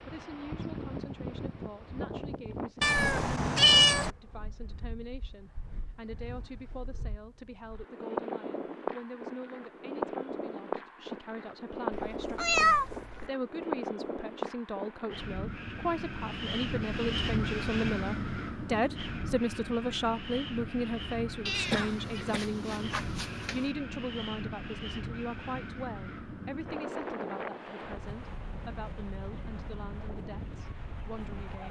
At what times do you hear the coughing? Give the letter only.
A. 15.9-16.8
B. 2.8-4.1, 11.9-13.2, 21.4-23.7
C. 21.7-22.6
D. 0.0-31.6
C.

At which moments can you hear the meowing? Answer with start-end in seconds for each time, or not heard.
2.8-4.1, 11.9-13.2, 21.4-23.7.